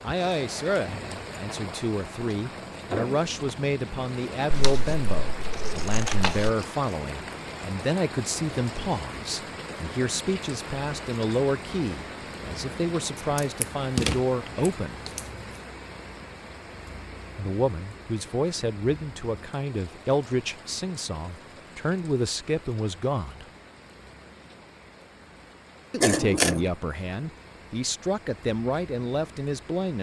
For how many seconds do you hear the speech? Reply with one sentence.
You can hear the speech for 25 seconds altogether.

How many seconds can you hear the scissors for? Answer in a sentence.
You can hear the scissors for 5 seconds altogether.